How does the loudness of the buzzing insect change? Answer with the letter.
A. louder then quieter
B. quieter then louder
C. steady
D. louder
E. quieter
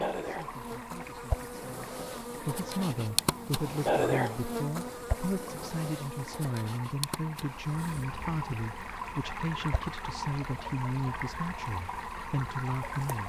A.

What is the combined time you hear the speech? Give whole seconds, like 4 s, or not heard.
13 s.